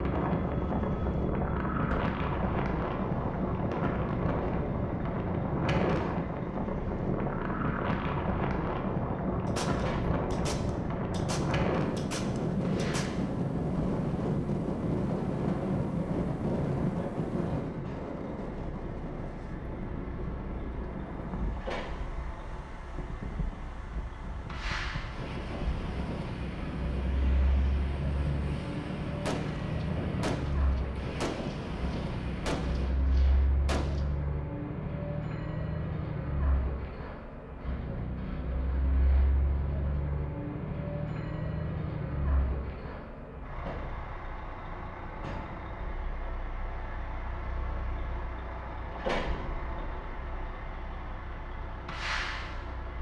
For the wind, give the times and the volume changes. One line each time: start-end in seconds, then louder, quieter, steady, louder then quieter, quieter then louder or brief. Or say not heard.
0.0-33.0 quieter.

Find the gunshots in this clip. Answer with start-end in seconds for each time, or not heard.
9.4-13.2, 29.2-34.0.